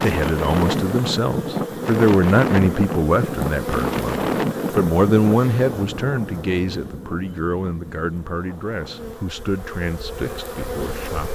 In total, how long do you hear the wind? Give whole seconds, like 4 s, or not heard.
11 s.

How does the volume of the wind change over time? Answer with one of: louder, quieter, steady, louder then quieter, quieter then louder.
quieter.